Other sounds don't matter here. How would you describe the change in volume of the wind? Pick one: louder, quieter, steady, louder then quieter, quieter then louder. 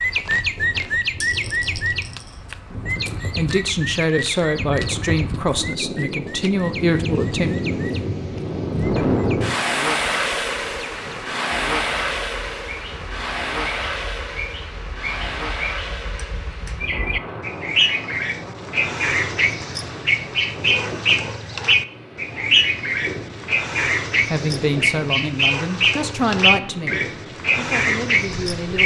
louder then quieter.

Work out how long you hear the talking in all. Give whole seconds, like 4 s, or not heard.
9 s.